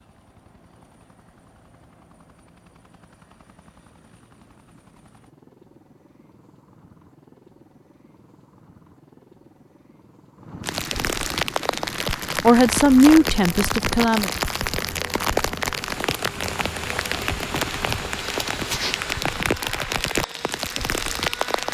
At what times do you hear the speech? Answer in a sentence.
You can hear the speech from 12.4 to 14.3 s.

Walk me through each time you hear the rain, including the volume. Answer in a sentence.
You can hear the rain from 10.6 to 21.6 s, at a steady volume.